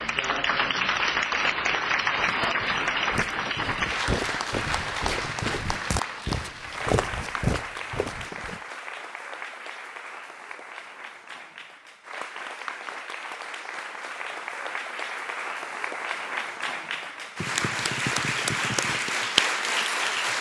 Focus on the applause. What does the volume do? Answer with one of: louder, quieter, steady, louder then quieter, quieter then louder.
quieter then louder.